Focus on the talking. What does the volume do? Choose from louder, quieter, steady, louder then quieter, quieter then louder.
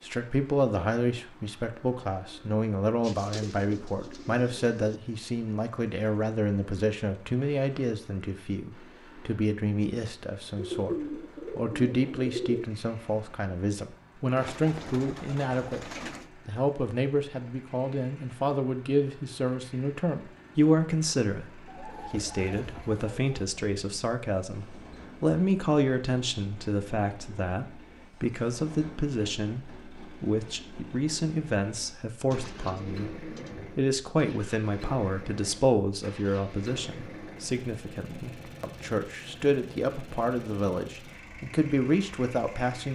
steady.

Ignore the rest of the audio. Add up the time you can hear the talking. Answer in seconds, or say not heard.
43 s.